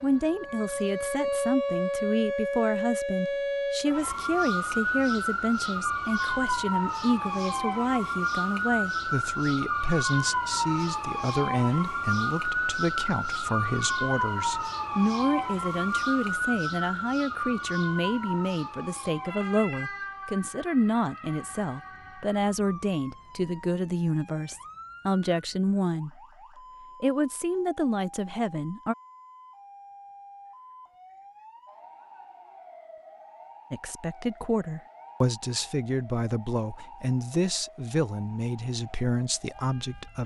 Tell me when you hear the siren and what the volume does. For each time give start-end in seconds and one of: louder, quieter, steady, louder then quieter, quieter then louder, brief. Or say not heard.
0.0-40.2 quieter.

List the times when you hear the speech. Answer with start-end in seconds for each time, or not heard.
0.0-26.2, 27.0-28.9, 33.7-40.2.